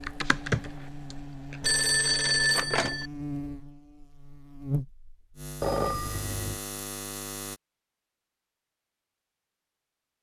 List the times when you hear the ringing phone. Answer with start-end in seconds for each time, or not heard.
1.6-3.1, 5.6-6.6.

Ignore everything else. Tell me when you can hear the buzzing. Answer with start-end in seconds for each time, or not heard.
0.0-7.6.